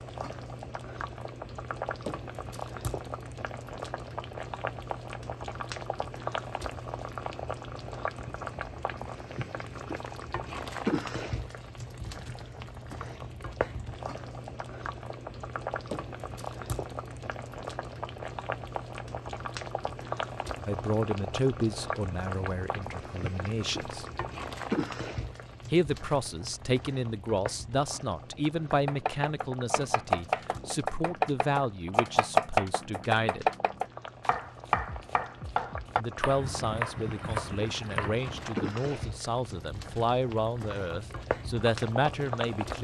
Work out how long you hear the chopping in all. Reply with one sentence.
You can hear the chopping for 10 seconds altogether.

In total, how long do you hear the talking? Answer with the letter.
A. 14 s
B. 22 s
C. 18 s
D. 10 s
C.